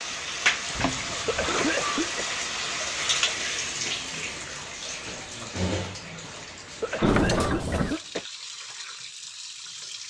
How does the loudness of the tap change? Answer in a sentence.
The volume of the tap goes down.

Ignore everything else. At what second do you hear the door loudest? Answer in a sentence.
The volume of the door peaks at 7 seconds.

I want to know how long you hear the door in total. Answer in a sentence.
The door can be heard for 2 seconds in total.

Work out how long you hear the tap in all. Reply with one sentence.
You can hear the tap for 10 seconds altogether.